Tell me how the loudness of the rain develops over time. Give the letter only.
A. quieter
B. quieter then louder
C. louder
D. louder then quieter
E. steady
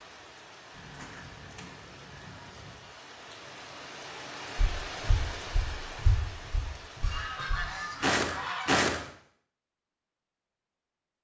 D.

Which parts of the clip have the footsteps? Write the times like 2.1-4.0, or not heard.
4.5-9.0.